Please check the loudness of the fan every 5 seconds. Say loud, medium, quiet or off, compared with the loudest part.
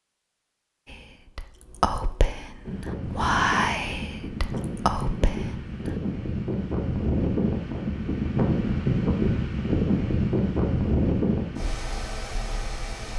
medium, loud, loud.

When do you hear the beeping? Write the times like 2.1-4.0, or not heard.
not heard.